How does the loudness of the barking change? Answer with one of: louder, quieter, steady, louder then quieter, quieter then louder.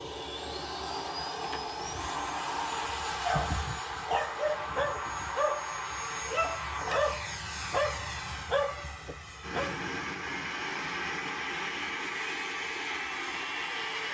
steady.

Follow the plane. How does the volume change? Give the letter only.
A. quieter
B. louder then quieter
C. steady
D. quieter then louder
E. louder
C.